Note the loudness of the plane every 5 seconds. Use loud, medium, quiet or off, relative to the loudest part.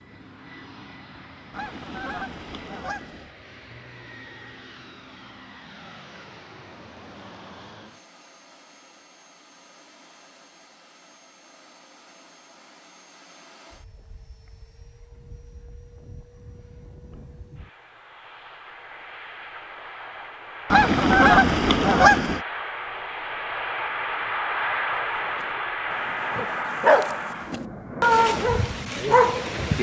quiet, quiet, quiet, quiet, loud, loud.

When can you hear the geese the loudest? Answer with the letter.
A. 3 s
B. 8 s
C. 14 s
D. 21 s
D.